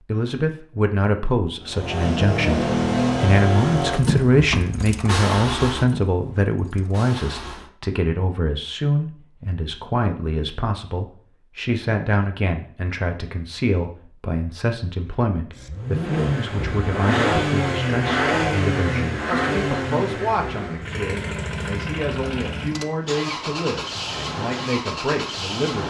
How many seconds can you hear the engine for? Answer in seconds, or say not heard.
16 s.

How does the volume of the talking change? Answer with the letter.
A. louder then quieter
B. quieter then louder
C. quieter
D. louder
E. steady
C.